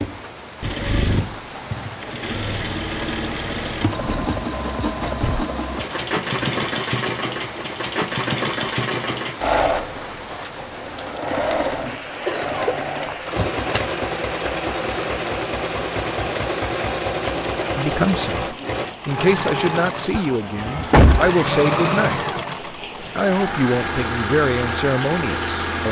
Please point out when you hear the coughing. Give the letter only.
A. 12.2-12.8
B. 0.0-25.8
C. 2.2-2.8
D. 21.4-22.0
A.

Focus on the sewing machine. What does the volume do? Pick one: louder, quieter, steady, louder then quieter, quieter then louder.
steady.